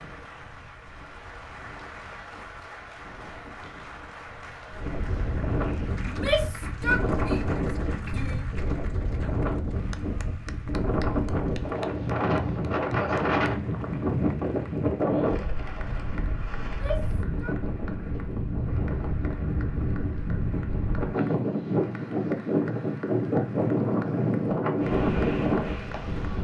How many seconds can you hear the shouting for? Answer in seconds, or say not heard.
3 s.